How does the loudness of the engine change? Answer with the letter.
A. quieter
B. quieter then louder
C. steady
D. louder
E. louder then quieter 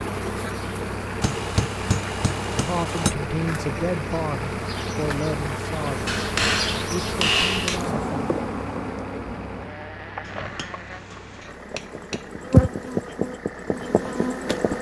A.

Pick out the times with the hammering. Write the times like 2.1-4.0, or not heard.
1.2-3.1, 6.0-7.8, 10.2-12.6.